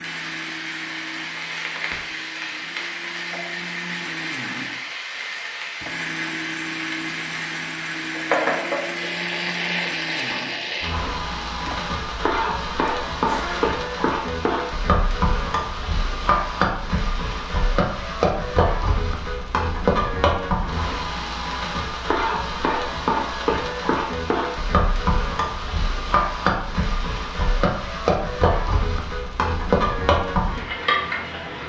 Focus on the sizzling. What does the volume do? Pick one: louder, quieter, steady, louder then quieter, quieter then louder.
louder.